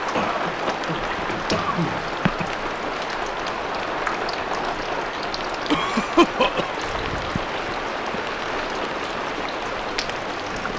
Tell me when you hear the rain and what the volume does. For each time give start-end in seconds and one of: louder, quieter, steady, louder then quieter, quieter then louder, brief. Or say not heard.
0.0-10.7 steady.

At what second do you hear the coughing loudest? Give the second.
6 s.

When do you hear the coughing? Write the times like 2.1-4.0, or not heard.
0.1-2.5, 5.7-6.8.